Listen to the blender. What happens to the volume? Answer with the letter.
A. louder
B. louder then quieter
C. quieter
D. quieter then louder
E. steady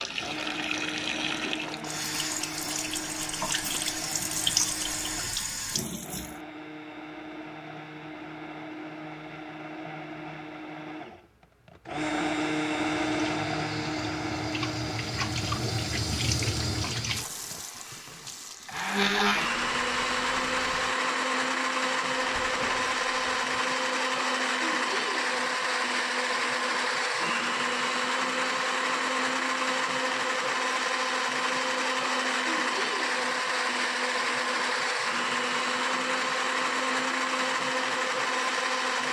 A.